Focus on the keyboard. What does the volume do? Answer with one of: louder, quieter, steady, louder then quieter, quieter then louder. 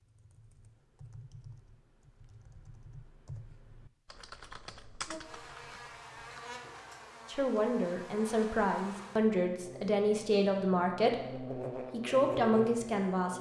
louder.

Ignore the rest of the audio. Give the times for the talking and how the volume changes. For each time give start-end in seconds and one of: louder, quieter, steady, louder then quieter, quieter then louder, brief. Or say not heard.
7.2-13.3 steady.